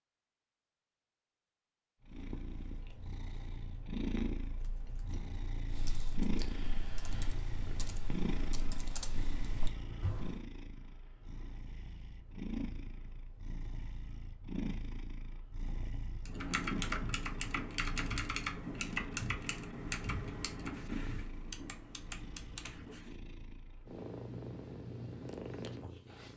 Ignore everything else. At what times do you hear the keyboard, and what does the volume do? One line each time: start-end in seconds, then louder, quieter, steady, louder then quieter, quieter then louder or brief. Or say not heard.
4.4-10.4 louder
16.2-23.1 quieter.